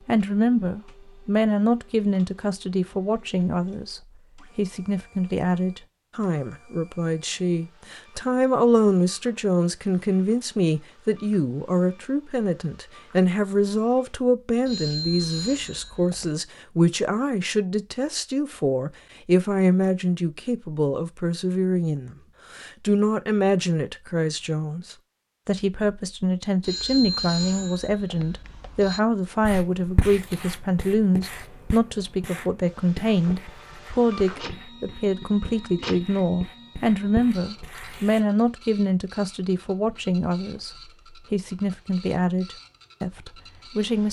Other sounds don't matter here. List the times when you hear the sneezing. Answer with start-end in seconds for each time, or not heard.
not heard.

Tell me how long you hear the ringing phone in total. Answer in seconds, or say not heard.
4 s.